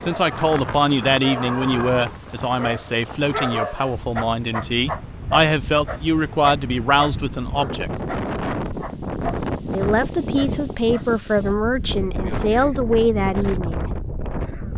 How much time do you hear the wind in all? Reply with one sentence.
The wind can be heard for 15 seconds in total.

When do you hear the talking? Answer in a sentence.
You can hear the talking from 0.0 to 7.9 s and from 9.7 to 13.9 s.